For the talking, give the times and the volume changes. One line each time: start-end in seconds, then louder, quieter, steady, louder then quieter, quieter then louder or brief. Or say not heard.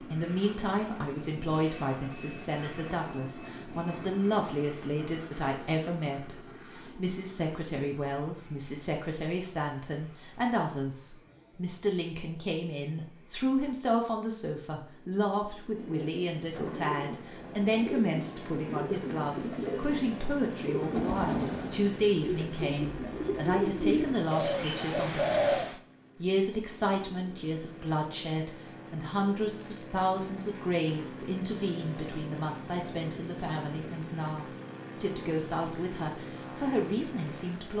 0.0-37.7 steady.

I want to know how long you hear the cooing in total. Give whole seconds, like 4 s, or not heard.
10 s.